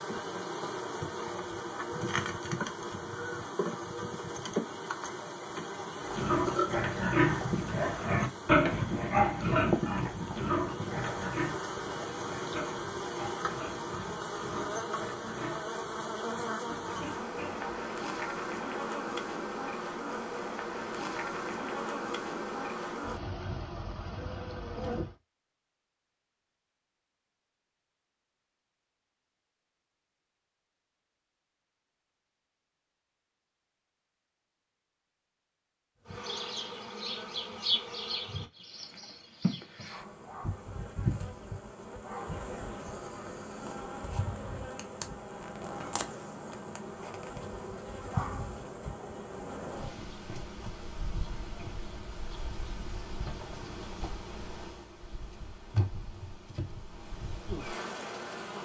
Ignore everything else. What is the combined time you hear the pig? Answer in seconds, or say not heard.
12 s.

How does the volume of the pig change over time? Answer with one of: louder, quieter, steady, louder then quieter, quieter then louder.
quieter.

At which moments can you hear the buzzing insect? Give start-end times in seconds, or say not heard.
0.0-25.1, 36.0-58.6.